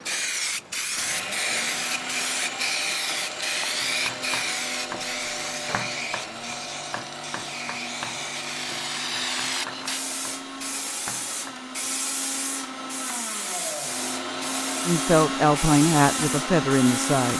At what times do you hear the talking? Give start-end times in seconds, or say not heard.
14.8-17.3.